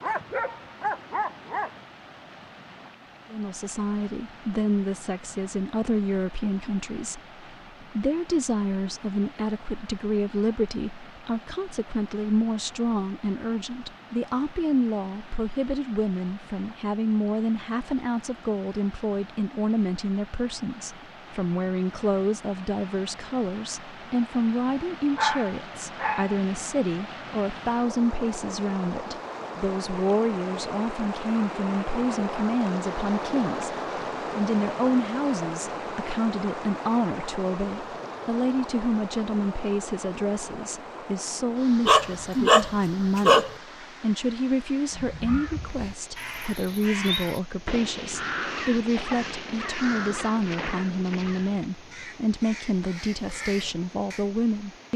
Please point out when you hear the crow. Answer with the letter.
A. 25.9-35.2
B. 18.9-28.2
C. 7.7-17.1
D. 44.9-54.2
D.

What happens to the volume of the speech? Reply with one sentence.
The loudness of the speech stays about the same.